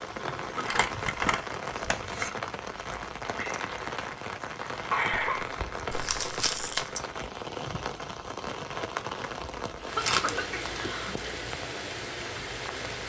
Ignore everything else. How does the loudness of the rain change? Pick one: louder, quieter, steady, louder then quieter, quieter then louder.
steady.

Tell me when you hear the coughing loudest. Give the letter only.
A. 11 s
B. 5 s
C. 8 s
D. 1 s
B.